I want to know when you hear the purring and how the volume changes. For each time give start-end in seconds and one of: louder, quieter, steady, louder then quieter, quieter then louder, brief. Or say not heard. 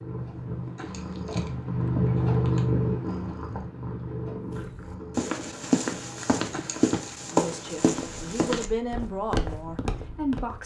0.0-10.6 quieter.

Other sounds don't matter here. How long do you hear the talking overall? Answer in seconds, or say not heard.
3 s.